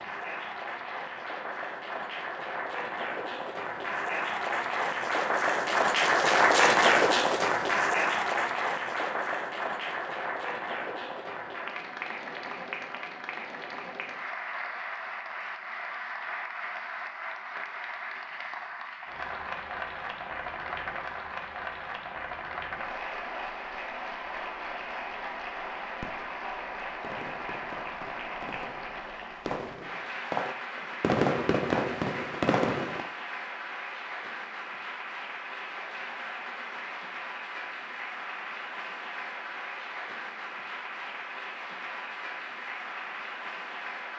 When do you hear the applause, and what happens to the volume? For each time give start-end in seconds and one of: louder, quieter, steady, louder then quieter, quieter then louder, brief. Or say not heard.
0.0-44.1 quieter.